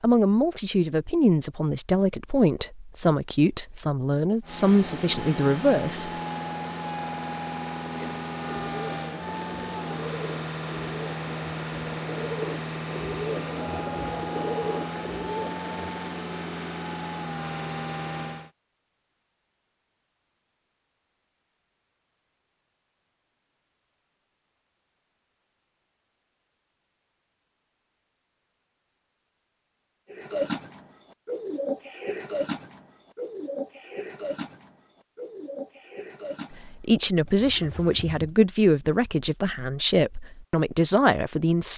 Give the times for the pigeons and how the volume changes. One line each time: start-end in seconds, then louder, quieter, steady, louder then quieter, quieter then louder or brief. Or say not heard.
7.9-16.0 louder
30.1-38.4 quieter.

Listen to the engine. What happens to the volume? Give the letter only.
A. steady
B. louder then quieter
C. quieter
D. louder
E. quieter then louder
A.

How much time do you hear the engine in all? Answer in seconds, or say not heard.
14 s.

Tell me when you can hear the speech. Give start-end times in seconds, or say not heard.
0.0-6.1, 36.6-41.7.